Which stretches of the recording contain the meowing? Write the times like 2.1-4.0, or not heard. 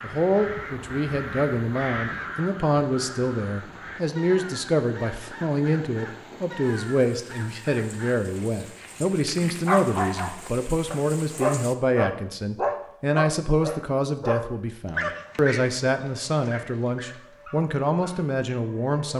not heard.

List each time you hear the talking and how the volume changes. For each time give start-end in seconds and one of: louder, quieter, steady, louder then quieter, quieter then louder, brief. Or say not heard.
0.0-19.1 steady.